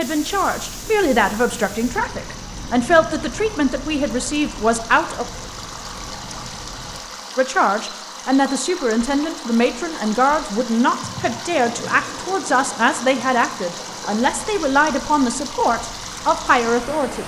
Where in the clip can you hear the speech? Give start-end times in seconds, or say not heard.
0.0-5.2, 7.3-17.2.